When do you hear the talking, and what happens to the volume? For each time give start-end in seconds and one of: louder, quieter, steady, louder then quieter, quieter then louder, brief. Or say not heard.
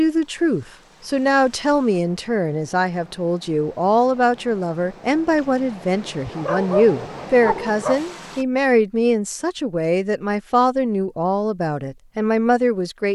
0.0-13.1 steady.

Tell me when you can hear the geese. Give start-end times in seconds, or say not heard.
not heard.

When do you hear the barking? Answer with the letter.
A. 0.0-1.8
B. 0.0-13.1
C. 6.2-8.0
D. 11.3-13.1
C.